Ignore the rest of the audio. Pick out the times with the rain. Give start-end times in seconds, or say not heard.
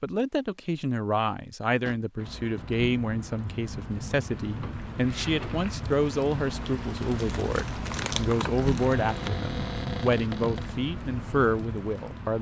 2.1-12.3.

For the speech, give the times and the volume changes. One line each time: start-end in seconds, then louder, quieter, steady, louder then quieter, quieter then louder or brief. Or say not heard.
0.0-12.3 steady.